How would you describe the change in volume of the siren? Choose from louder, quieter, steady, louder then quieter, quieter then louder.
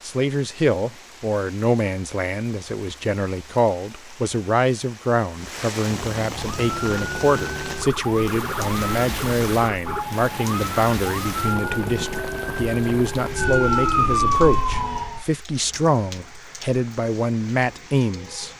louder.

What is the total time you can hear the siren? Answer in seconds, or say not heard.
9 s.